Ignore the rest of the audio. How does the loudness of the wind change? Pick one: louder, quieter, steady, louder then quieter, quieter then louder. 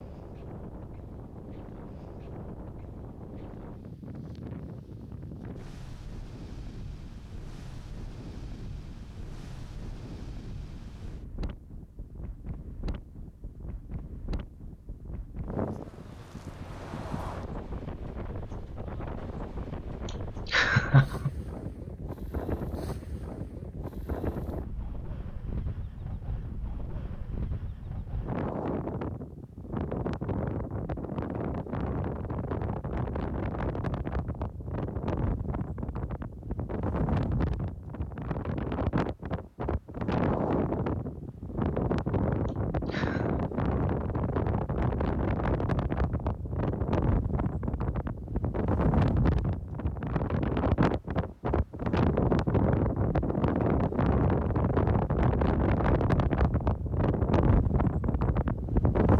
louder.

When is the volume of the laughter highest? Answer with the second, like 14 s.
21 s.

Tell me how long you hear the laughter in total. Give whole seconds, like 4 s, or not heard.
2 s.